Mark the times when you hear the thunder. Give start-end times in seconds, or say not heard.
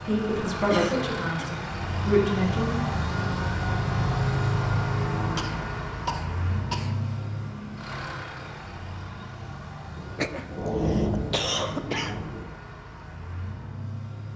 9.9-12.4.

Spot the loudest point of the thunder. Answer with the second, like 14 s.
11 s.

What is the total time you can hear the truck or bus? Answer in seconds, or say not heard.
14 s.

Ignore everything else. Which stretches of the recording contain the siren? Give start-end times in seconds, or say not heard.
not heard.